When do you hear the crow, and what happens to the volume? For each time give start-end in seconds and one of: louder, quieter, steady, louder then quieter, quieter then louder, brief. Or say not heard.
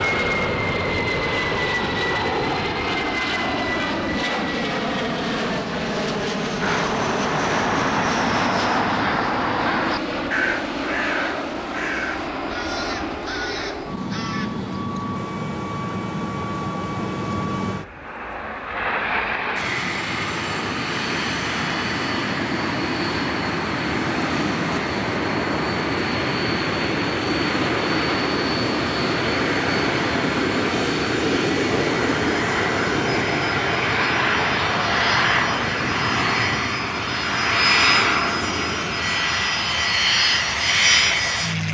6.6-14.7 quieter.